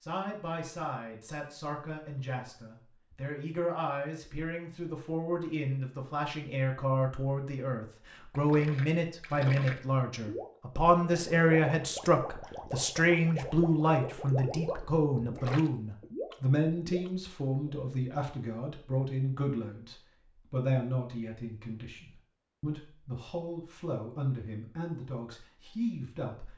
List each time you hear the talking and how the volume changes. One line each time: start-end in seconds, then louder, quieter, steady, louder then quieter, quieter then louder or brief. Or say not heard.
0.0-26.5 louder then quieter.